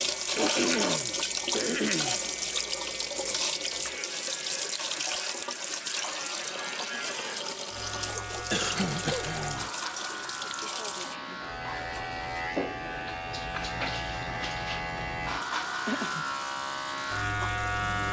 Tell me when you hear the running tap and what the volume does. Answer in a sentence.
You can hear the running tap from 0.0 to 18.0 s, getting quieter.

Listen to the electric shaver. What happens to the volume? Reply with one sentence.
The volume of the electric shaver goes up.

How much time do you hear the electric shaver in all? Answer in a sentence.
You can hear the electric shaver for 18 seconds altogether.